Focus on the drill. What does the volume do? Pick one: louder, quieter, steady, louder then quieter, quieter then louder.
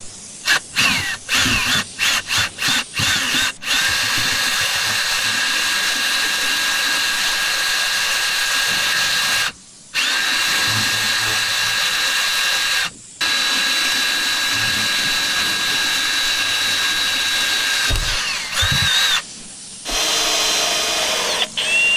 steady.